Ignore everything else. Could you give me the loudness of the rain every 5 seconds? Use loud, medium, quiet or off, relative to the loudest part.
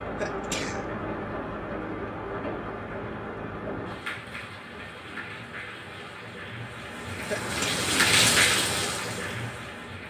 medium, loud.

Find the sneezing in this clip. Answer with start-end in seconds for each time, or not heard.
0.1-0.9, 7.3-7.9.